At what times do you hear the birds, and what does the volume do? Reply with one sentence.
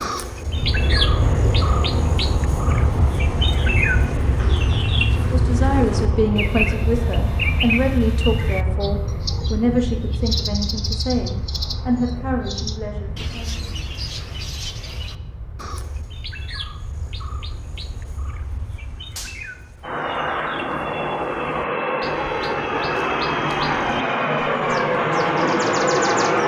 The birds can be heard from 0.0 to 26.4 s, getting quieter.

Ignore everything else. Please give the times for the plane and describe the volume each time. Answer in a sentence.
The plane can be heard from 0.1 to 26.4 s, getting quieter then louder.